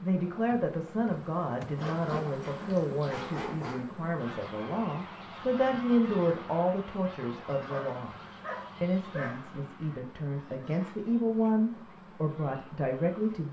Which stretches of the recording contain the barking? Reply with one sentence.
The barking can be heard from 1.8 to 3.9 s and from 7.7 to 9.5 s.